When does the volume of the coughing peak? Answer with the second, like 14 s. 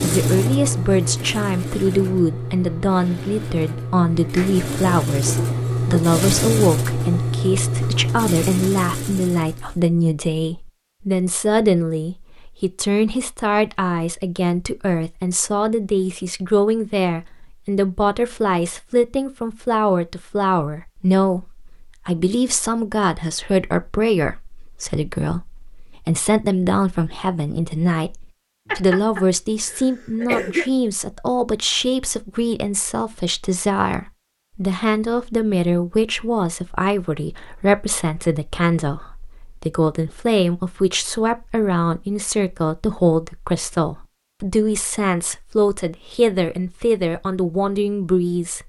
30 s.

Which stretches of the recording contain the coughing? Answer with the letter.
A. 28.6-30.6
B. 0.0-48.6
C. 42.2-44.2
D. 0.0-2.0
A.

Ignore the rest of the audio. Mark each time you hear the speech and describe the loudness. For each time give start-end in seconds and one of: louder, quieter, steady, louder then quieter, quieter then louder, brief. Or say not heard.
0.0-48.6 steady.